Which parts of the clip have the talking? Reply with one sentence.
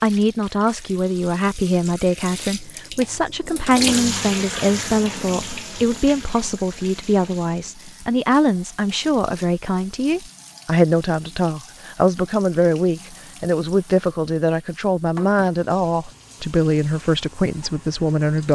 The talking can be heard from 0.0 to 18.4 s.